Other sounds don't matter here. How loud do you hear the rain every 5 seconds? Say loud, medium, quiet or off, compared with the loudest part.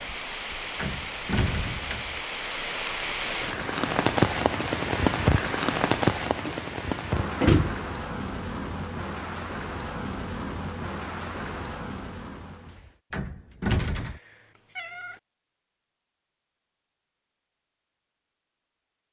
loud, loud, medium, off.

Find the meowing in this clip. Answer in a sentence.
The meowing can be heard from 13.8 to 15.2 s.